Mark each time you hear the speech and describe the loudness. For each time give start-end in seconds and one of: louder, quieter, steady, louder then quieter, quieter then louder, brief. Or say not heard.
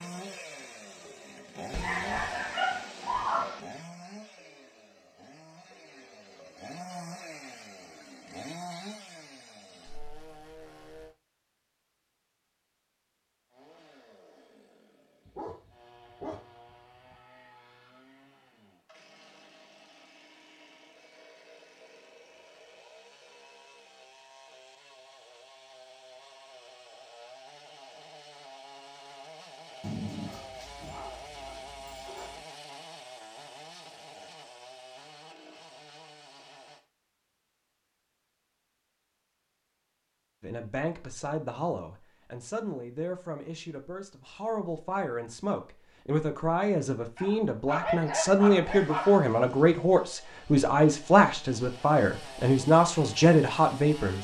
40.4-54.1 louder.